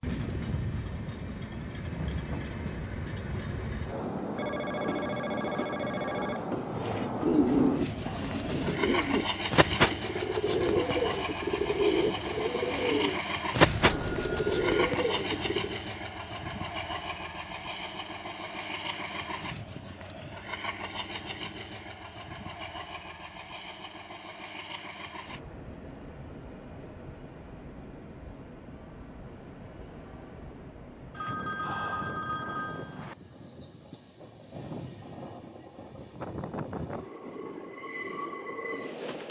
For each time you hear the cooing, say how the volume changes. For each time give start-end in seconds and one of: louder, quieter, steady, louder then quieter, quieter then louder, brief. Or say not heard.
6.7-15.8 steady.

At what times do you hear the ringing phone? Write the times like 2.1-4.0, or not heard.
4.3-6.4, 13.6-14.9, 31.1-33.1.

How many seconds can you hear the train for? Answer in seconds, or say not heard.
39 s.